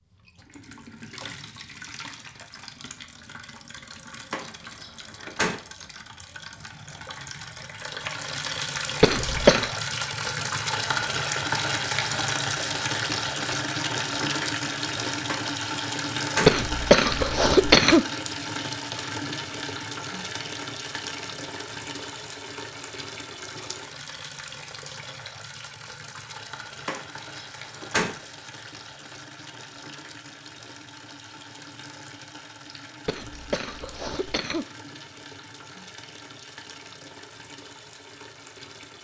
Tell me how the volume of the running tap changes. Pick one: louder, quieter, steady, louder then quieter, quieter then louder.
louder then quieter.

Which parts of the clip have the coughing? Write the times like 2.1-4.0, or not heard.
9.0-9.7, 16.4-18.1, 33.0-34.6.